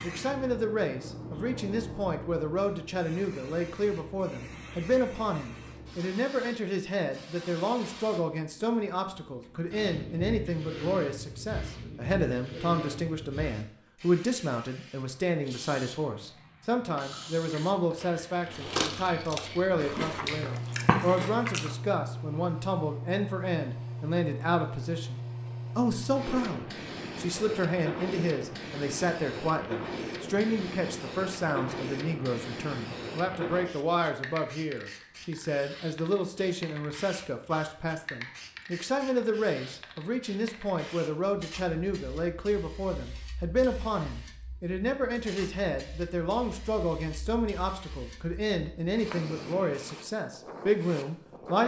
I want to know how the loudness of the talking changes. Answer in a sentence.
The volume of the talking stays about the same.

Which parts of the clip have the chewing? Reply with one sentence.
The chewing can be heard from 16.9 to 21.8 s.